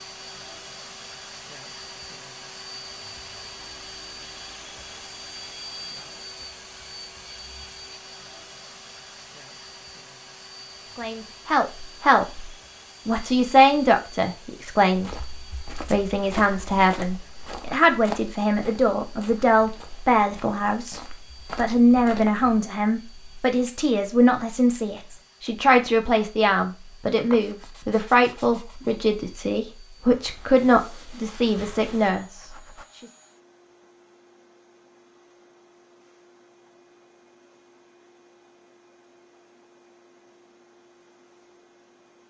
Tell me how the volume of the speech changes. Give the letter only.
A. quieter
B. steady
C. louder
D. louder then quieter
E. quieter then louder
B.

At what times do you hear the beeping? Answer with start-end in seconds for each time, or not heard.
not heard.